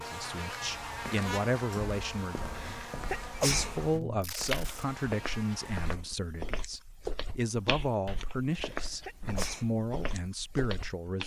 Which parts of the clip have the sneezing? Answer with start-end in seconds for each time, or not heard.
2.5-3.8, 8.5-9.7.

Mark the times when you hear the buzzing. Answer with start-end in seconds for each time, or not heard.
0.0-6.0.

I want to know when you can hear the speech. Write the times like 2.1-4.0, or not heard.
0.0-11.2.